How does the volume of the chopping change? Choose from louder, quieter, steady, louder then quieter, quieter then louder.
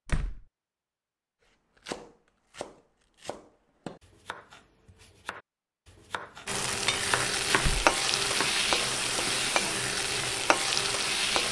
louder.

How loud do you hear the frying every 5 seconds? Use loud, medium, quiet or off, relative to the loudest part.
off, loud, loud.